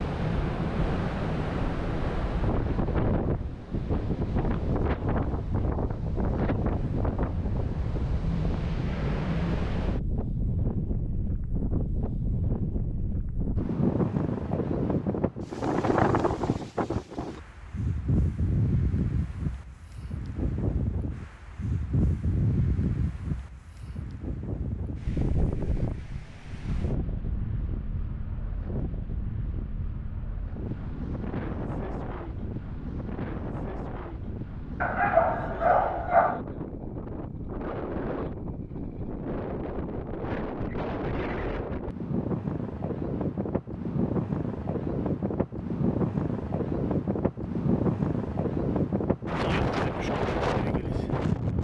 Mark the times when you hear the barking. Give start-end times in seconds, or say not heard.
34.8-36.4.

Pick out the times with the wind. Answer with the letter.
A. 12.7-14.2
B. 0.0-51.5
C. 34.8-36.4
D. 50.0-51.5
B.